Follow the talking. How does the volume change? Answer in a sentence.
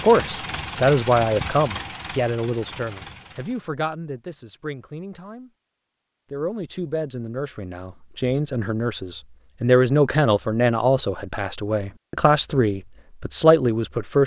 The volume of the talking goes down, then up.